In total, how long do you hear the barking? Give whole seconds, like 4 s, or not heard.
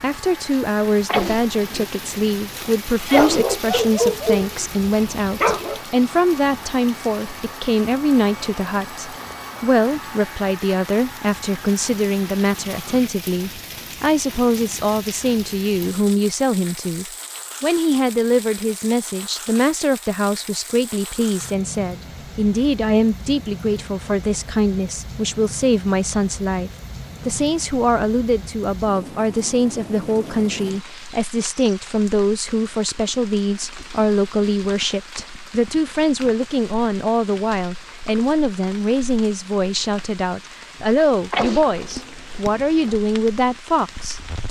3 s.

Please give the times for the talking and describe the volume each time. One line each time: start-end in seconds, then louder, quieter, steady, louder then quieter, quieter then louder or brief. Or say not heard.
0.0-44.4 steady.